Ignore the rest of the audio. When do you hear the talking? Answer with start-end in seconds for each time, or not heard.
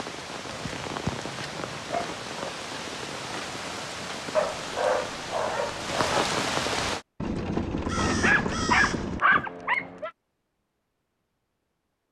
not heard.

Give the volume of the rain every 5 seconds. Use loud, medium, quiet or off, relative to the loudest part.
medium, loud, off.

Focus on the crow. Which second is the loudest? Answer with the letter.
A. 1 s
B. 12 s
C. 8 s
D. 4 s
C.